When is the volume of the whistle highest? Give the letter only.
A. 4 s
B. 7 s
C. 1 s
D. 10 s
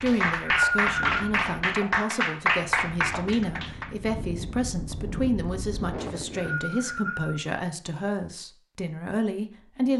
C.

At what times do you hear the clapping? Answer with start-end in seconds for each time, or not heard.
0.0-3.9.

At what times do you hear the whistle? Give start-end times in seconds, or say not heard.
0.1-1.2, 6.0-7.3.